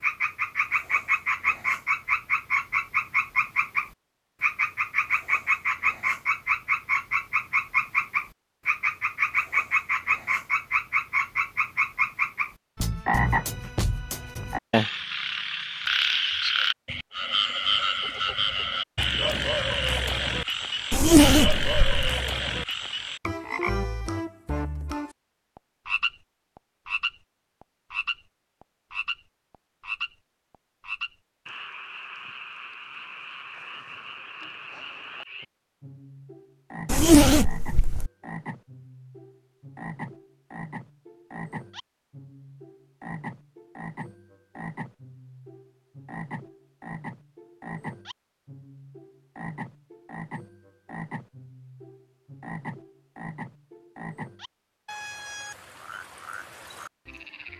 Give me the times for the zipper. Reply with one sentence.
You can hear the zipper from 20.9 to 22.1 s and from 36.9 to 38.1 s.